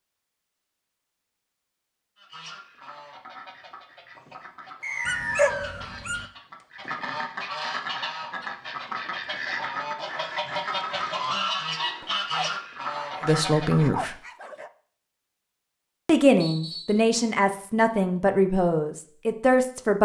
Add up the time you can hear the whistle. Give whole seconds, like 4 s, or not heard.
2 s.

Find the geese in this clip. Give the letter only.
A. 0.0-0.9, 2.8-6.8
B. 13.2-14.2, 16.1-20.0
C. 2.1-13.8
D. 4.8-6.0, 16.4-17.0
C.